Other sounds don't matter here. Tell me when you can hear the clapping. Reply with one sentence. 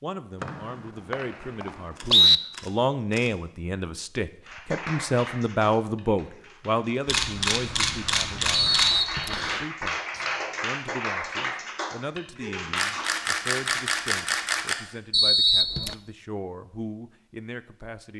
The clapping can be heard from 4.5 to 13.2 s.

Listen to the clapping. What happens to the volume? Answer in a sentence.
The loudness of the clapping goes down, then up.